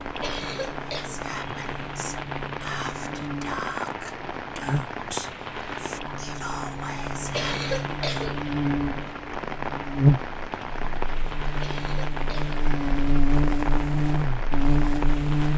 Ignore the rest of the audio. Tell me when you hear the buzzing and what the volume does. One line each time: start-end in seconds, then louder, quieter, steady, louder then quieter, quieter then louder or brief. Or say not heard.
0.1-15.5 louder.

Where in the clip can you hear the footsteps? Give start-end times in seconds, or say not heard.
not heard.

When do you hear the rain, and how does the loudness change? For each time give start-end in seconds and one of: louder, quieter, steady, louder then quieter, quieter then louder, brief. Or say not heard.
0.0-15.5 steady.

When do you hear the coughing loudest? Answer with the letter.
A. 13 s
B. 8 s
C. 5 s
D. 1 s
B.